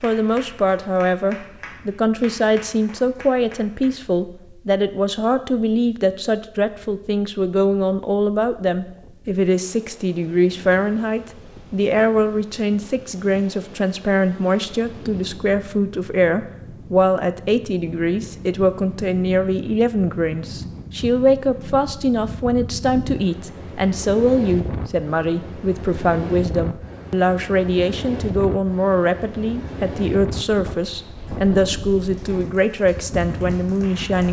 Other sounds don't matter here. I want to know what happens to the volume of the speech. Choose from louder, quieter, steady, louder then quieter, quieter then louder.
steady.